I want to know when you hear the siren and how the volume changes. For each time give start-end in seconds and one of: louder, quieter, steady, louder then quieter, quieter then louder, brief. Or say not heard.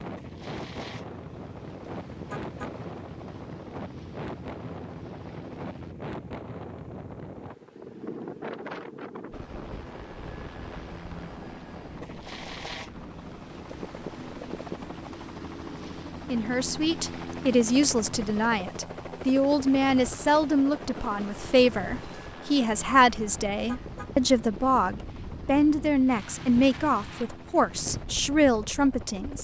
not heard.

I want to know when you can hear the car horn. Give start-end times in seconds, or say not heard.
2.3-2.8, 23.6-24.1.